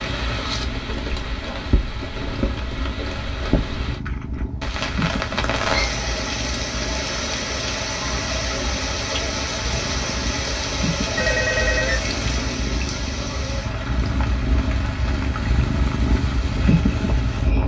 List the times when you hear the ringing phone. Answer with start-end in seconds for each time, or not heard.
11.2-12.6.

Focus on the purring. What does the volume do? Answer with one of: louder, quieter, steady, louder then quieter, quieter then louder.
louder.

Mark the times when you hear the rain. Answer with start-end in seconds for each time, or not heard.
0.0-17.6.